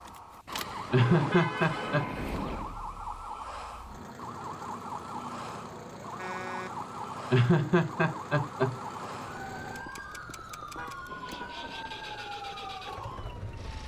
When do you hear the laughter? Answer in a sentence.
You can hear the laughter from 0.9 to 2.1 s and from 7.3 to 8.8 s.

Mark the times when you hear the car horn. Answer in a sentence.
You can hear the car horn from 0.5 to 2.8 s, from 6.2 to 6.8 s and from 10.8 to 11.5 s.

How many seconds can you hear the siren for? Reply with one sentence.
The siren can be heard for 14 seconds in total.